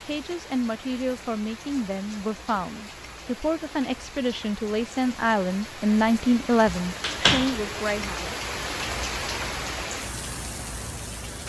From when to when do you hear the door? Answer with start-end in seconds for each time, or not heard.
6.7-7.6.